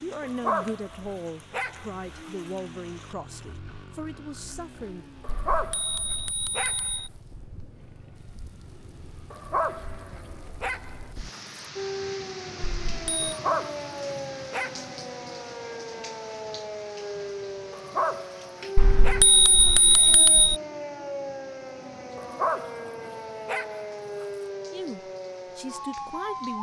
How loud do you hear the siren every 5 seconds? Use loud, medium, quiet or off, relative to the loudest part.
off, off, loud, loud, loud, loud.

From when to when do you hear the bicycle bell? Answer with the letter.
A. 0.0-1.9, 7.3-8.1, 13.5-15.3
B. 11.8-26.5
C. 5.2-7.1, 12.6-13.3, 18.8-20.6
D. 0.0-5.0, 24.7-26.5
C.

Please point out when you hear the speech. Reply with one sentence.
The speech can be heard from 0.0 to 5.0 s and from 24.7 to 26.5 s.